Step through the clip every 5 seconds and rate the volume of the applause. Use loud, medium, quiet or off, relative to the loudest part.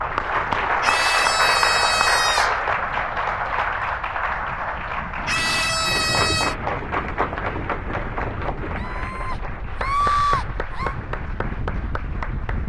loud, medium, medium.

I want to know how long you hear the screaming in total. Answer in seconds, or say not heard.
5 s.